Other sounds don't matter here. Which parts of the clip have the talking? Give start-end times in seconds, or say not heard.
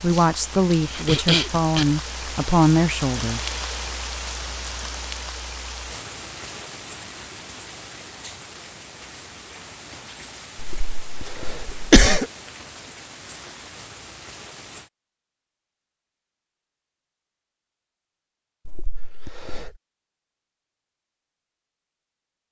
0.0-3.4.